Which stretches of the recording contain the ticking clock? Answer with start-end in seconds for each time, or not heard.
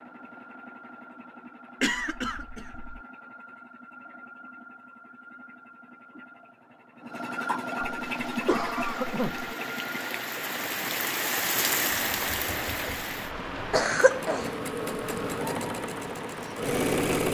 not heard.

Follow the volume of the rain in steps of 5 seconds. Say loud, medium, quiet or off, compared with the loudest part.
off, medium, loud, medium.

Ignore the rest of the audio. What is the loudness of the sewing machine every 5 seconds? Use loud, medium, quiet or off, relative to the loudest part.
quiet, medium, medium, loud.